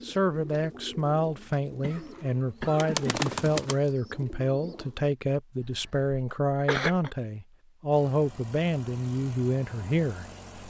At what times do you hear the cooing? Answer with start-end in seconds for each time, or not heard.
0.0-5.0.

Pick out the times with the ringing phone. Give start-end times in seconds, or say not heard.
not heard.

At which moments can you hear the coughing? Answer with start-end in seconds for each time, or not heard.
1.8-3.3, 5.6-7.1.